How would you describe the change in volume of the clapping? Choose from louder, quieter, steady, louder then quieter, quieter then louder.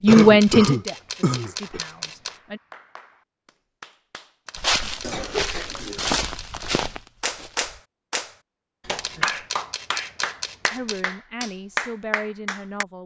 louder.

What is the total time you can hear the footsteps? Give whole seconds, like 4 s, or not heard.
3 s.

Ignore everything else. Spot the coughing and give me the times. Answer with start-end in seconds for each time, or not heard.
0.1-1.8, 5.0-6.2, 9.2-10.2.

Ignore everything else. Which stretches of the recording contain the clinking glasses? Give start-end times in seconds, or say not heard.
not heard.